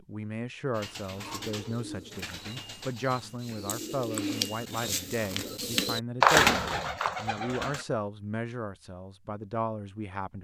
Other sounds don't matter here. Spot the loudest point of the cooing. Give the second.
6 s.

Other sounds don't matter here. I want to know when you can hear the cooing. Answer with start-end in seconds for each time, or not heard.
0.7-7.8.